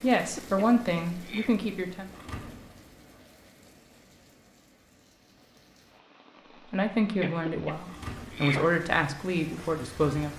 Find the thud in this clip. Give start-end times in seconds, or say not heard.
2.1-2.9, 7.8-8.4.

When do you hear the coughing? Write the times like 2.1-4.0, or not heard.
0.1-1.6, 7.2-8.8.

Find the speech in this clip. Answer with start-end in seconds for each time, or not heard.
0.0-2.1, 6.7-10.3.